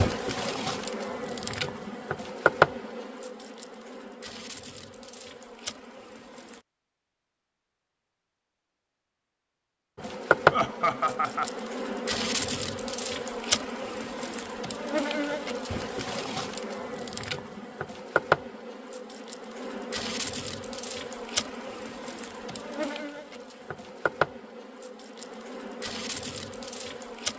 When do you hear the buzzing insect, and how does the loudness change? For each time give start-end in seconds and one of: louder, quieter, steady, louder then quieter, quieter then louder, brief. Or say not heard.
0.0-6.6 louder then quieter
9.9-27.3 quieter.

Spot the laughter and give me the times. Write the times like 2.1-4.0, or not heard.
10.5-11.5.